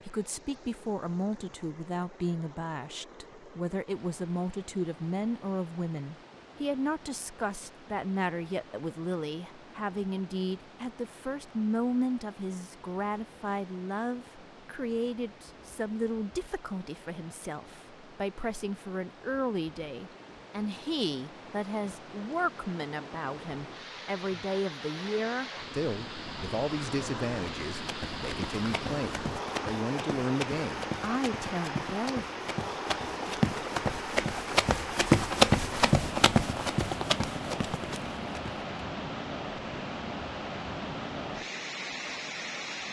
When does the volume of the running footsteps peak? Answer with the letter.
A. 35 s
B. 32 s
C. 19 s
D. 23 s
A.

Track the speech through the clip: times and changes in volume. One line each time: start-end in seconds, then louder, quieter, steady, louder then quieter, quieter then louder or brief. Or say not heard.
0.1-32.2 steady.